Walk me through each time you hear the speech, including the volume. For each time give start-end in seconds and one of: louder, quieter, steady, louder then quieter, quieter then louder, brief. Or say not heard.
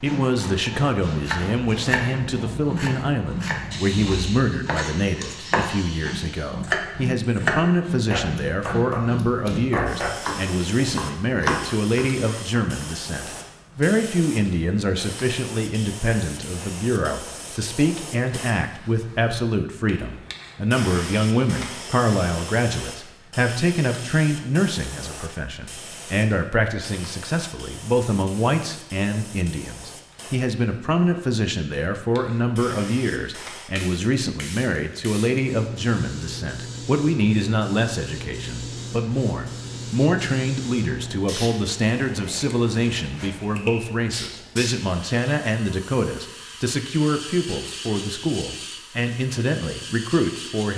0.0-50.7 steady.